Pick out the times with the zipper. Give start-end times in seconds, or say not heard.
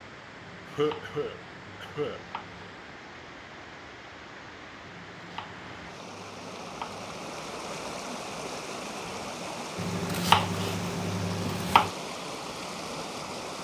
not heard.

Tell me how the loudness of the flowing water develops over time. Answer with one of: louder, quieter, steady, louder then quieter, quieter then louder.
louder.